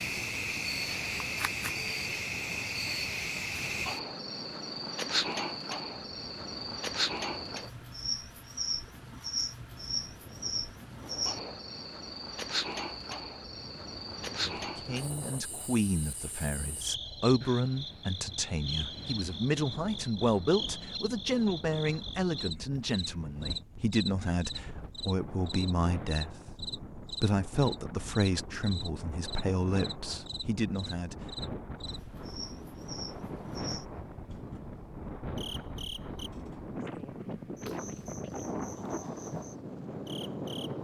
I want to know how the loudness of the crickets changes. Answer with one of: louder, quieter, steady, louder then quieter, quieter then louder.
quieter.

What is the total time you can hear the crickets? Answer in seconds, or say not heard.
41 s.